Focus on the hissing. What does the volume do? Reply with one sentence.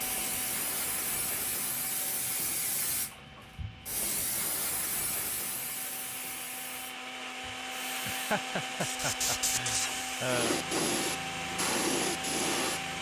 The volume of the hissing goes down, then up.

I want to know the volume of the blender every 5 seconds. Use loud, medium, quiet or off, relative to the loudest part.
medium, loud, loud.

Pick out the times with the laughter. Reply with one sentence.
You can hear the laughter from 8.1 to 10.6 s.